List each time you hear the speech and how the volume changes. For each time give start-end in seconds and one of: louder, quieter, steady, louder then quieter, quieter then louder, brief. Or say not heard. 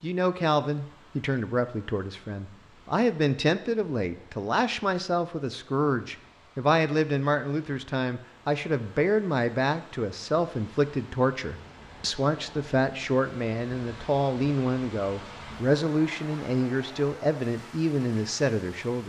0.0-19.0 steady.